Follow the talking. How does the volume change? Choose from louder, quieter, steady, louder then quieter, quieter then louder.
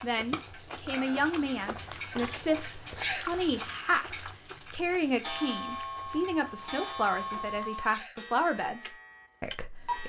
steady.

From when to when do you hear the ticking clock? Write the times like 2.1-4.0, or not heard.
0.0-10.0.